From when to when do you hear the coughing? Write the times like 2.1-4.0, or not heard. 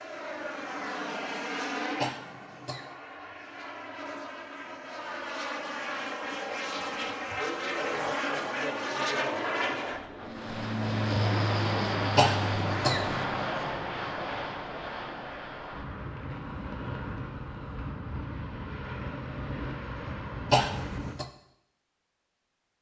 2.0-2.9, 12.2-13.2, 20.5-21.2.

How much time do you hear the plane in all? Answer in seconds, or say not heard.
21 s.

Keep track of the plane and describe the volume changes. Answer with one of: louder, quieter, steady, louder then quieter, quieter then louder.
louder then quieter.